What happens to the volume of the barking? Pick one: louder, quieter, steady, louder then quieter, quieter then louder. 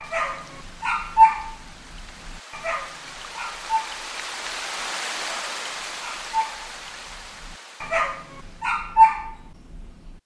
quieter then louder.